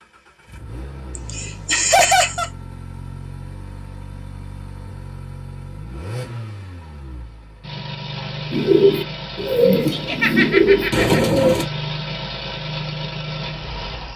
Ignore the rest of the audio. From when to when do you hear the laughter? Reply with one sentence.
The laughter can be heard from 1.1 to 2.5 s and from 9.9 to 11.2 s.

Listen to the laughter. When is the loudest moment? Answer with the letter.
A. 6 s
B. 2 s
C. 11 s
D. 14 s
B.